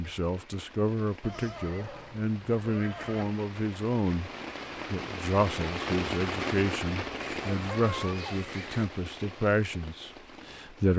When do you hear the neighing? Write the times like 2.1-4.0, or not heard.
1.2-3.2, 7.2-8.8.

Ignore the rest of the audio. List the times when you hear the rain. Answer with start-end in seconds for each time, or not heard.
0.0-10.9.